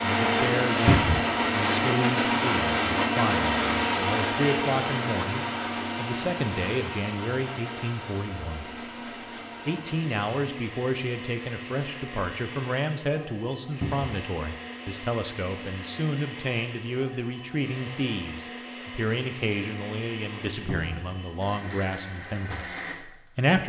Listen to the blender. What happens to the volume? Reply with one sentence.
The loudness of the blender goes down.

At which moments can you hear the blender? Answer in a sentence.
You can hear the blender from 0.0 to 23.5 s.